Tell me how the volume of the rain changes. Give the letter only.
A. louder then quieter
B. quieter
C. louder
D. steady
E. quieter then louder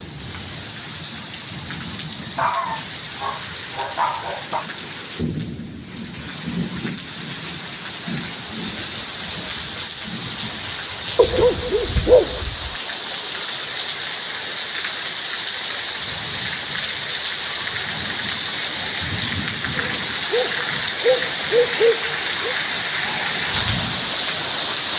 C.